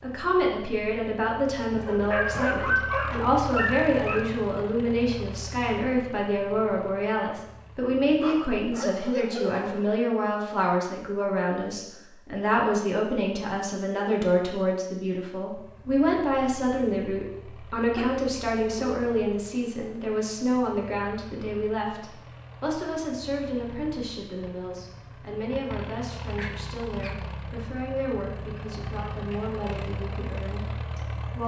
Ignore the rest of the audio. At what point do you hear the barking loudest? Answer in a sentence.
The volume of the barking peaks at 3 seconds.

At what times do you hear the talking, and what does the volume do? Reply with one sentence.
You can hear the talking from 0.0 to 31.4 s, getting quieter.